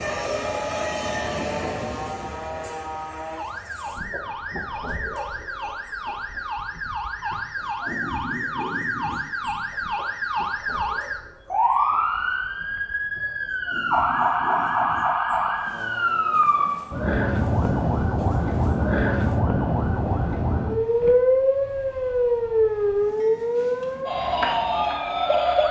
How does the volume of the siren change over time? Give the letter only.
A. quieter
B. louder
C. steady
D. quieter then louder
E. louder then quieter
B.